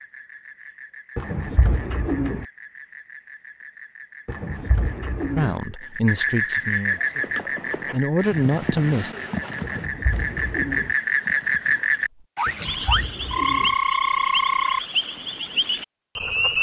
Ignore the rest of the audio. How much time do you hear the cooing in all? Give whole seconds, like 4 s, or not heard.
5 s.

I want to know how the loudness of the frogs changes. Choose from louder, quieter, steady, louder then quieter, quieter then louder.
louder.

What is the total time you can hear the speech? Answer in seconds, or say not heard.
4 s.